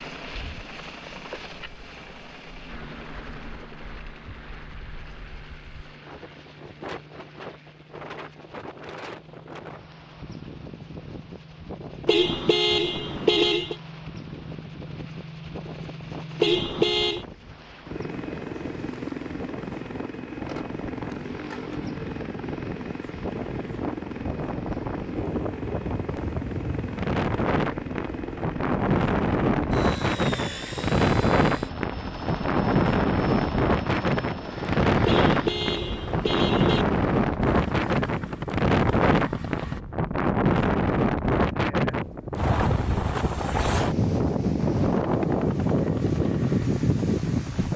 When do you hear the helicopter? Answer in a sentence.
You can hear the helicopter from 0.0 to 39.8 s and from 44.6 to 47.7 s.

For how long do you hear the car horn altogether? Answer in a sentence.
The car horn can be heard for 4 seconds in total.